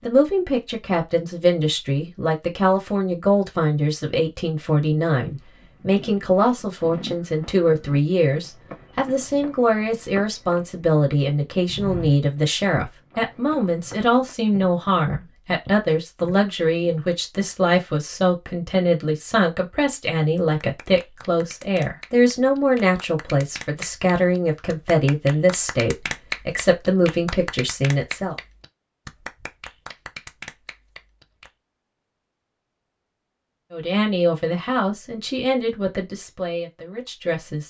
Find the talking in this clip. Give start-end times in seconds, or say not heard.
0.0-28.4, 33.7-37.6.